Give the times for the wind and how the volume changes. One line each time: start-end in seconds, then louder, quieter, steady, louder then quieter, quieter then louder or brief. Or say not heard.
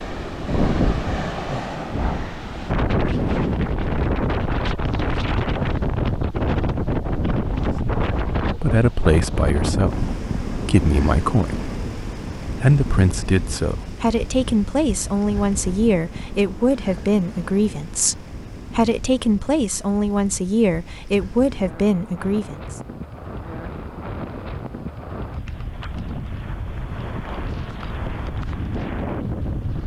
0.0-29.8 quieter then louder.